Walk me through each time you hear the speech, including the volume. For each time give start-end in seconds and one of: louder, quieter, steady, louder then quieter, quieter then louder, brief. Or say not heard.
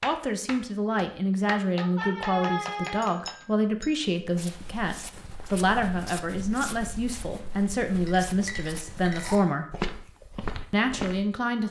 0.0-9.7 steady
10.7-11.6 brief.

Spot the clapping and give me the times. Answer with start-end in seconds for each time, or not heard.
0.0-3.5.